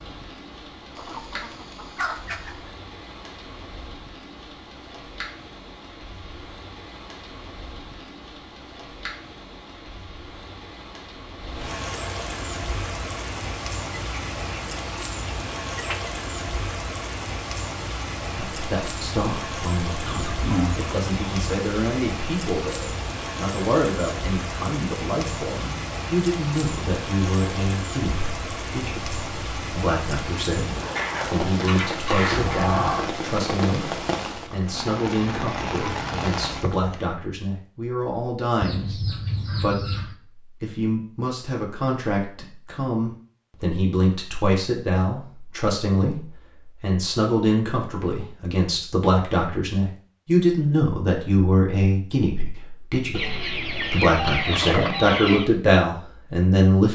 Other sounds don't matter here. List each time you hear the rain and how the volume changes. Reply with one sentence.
The rain can be heard from 0.0 to 37.0 s, getting louder.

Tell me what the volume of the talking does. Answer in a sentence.
The volume of the talking goes up.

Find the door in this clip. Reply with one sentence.
You can hear the door from 32.3 to 33.1 s.